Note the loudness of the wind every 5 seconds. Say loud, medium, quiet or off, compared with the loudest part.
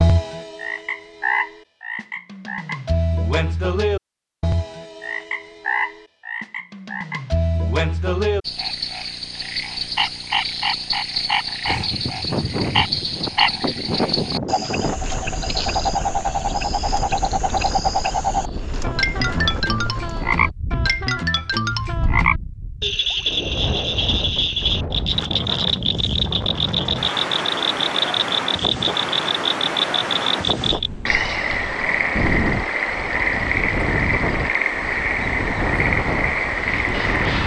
off, off, loud, medium, medium, loud, loud, loud.